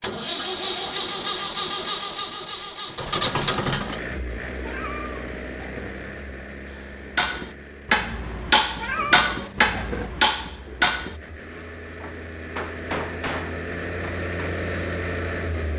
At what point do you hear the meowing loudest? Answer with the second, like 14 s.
9 s.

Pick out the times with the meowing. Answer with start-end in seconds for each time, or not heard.
4.6-6.2, 8.8-10.1.